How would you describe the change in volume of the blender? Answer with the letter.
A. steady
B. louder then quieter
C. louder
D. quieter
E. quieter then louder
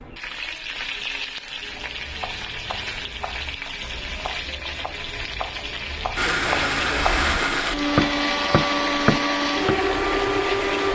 A.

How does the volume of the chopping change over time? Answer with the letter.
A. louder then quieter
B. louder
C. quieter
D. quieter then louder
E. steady
B.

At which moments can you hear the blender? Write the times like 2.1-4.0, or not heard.
6.2-10.8.